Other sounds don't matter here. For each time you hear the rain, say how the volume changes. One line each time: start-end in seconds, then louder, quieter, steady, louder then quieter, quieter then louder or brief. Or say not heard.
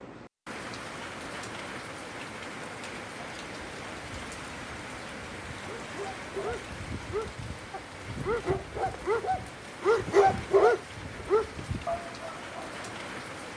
0.0-13.5 steady.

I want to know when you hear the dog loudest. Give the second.
11 s.